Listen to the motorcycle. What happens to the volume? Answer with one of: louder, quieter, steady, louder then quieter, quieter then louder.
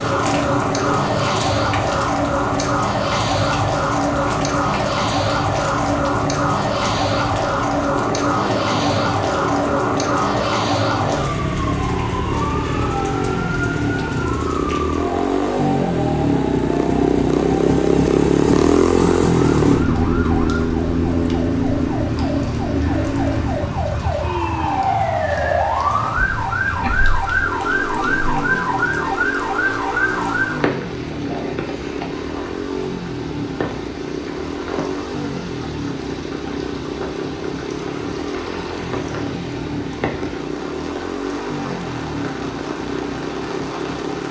louder then quieter.